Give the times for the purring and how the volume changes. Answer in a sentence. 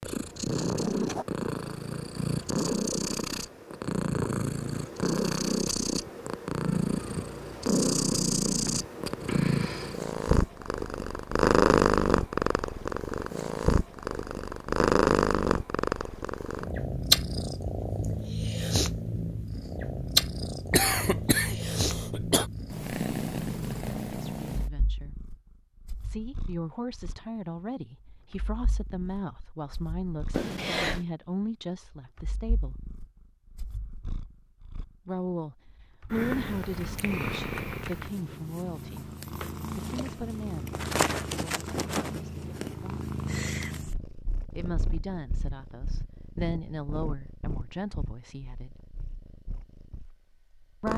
The purring can be heard from 0.0 to 50.9 s, getting quieter.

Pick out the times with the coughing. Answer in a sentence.
You can hear the coughing from 20.7 to 22.4 s and from 30.3 to 31.1 s.